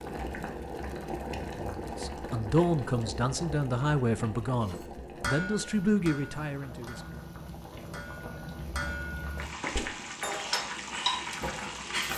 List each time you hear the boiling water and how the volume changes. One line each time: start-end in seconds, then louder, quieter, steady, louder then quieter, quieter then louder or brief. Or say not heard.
0.0-12.1 quieter then louder.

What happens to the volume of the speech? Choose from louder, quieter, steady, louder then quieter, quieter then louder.
steady.